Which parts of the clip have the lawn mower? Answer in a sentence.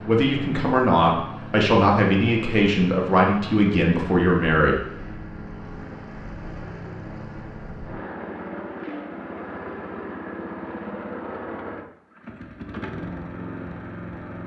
The lawn mower can be heard from 0.0 to 14.4 s.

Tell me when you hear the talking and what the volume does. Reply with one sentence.
The talking can be heard from 0.1 to 4.8 s, at a steady volume.